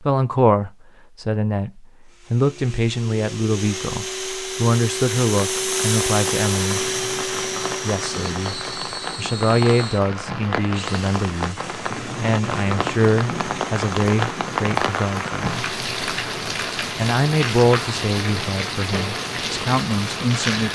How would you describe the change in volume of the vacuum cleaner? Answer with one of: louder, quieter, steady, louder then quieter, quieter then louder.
louder then quieter.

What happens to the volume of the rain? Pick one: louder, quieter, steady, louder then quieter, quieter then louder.
louder.